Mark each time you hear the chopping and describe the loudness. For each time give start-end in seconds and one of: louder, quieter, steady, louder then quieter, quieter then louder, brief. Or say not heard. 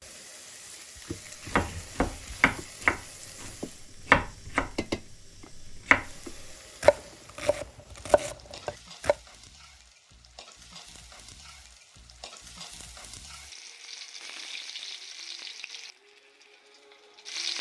1.4-9.2 quieter.